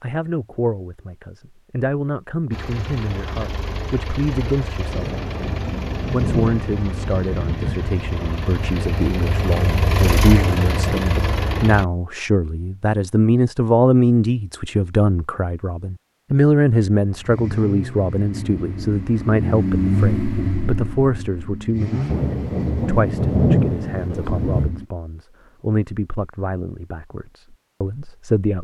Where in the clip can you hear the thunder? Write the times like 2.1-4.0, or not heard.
4.9-8.0, 22.1-24.8.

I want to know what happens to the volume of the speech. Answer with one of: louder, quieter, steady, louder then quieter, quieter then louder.
louder then quieter.